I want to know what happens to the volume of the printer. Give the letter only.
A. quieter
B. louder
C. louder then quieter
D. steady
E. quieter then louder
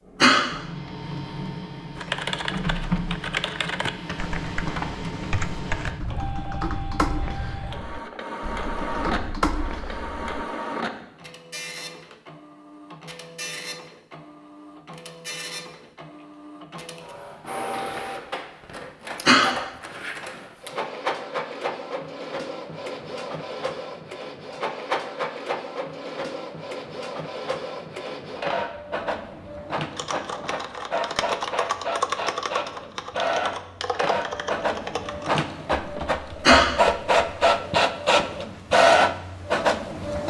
B.